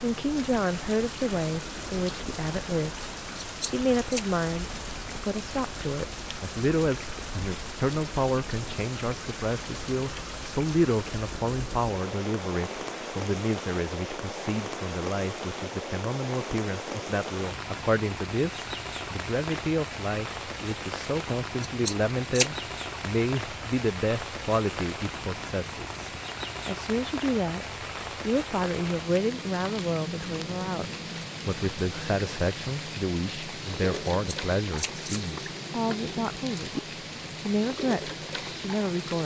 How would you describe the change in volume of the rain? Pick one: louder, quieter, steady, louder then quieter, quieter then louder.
steady.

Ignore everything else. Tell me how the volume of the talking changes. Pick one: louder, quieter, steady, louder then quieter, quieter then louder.
steady.